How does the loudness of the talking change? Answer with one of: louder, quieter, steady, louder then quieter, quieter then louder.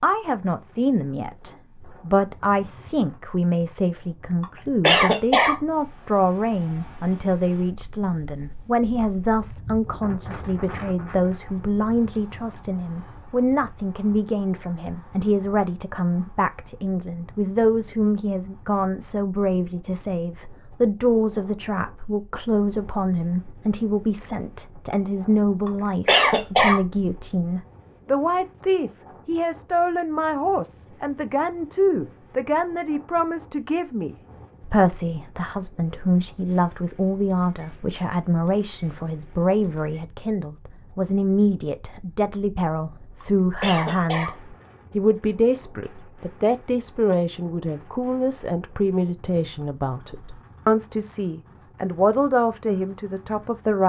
steady.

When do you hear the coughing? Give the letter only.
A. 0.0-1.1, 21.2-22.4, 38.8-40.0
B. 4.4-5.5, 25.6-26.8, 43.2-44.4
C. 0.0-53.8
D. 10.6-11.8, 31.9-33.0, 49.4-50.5
B.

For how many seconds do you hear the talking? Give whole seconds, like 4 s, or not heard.
54 s.